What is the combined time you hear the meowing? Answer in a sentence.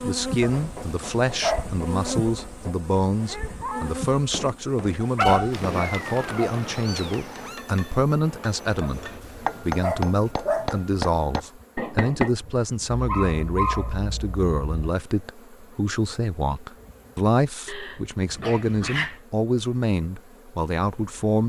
The meowing can be heard for 2 seconds in total.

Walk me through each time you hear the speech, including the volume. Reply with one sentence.
The speech can be heard from 0.0 to 21.4 s, at a steady volume.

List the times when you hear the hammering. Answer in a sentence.
You can hear the hammering from 0.3 to 12.3 s.